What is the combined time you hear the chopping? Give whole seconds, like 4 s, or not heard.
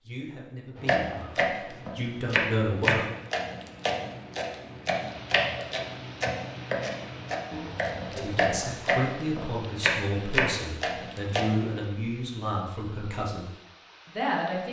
11 s.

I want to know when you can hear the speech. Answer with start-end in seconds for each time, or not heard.
0.1-3.0, 8.1-13.4, 14.1-14.6.